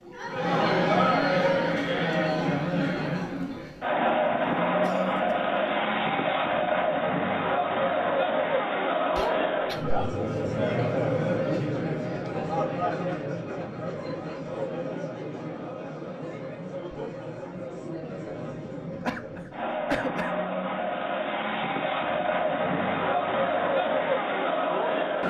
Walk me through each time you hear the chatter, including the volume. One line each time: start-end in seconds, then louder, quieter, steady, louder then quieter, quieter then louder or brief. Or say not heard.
0.0-25.2 quieter then louder.